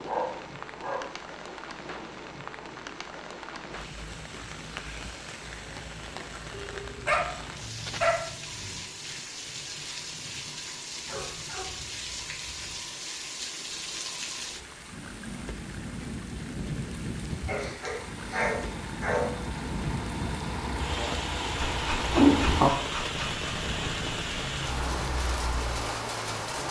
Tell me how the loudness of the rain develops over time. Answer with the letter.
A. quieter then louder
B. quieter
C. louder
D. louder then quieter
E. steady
C.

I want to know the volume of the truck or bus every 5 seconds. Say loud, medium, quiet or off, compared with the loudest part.
off, off, off, quiet, loud, quiet.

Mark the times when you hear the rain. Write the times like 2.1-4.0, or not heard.
0.0-26.6.